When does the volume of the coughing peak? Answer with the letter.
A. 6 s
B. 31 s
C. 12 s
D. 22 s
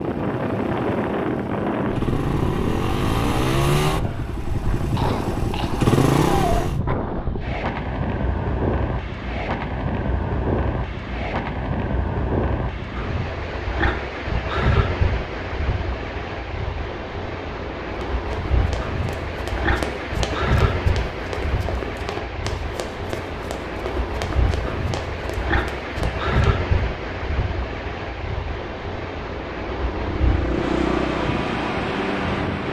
A.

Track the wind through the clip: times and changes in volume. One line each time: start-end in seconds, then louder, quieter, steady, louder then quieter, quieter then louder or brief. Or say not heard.
0.0-32.6 steady.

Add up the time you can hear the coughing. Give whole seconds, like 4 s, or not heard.
2 s.